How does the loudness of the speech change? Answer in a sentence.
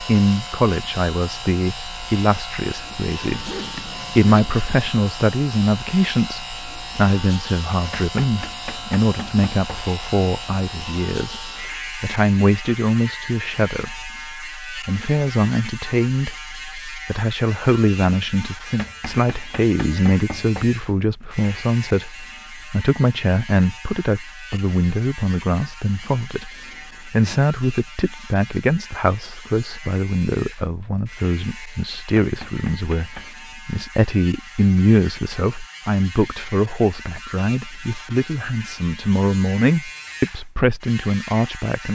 The loudness of the speech stays about the same.